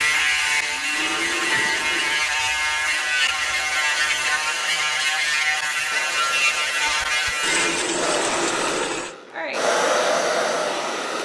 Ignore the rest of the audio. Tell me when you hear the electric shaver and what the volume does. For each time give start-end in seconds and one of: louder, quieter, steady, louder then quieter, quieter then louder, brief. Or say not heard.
0.0-8.0 steady.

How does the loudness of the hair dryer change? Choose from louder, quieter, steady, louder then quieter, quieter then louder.
louder.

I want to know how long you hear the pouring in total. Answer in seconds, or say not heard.
3 s.